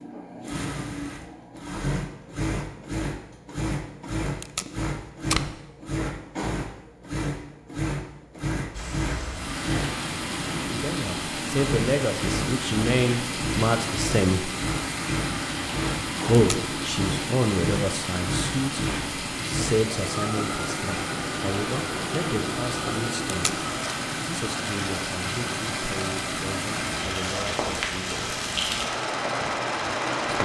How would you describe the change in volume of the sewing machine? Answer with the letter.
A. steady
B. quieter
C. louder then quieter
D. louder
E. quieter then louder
A.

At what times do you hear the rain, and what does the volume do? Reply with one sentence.
You can hear the rain from 8.7 to 30.4 s, at a steady volume.